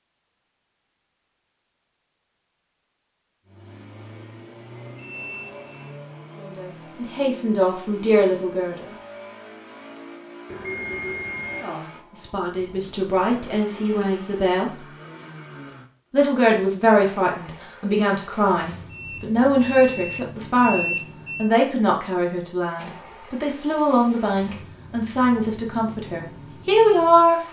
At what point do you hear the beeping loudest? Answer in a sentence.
The volume of the beeping peaks at 21 seconds.